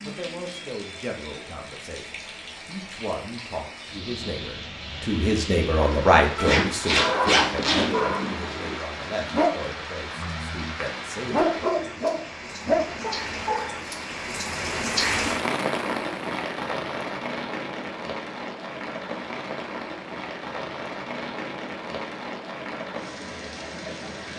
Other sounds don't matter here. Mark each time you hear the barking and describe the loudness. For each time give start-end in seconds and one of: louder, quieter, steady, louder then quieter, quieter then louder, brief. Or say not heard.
7.0-13.8 quieter then louder.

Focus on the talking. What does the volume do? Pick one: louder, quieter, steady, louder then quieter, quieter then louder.
louder then quieter.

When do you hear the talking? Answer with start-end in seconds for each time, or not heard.
0.0-11.7.